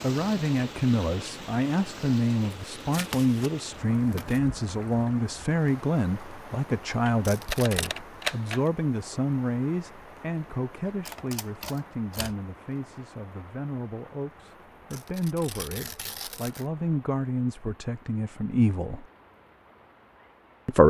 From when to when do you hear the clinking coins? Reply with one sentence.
The clinking coins can't be heard in this clip.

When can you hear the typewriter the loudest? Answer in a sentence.
The loudest moment of the typewriter is at 8 seconds.